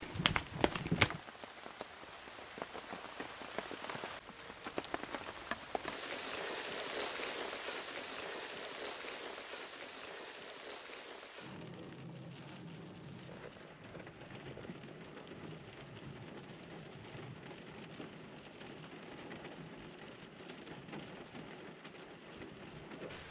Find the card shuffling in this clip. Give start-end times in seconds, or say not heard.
0.0-1.2.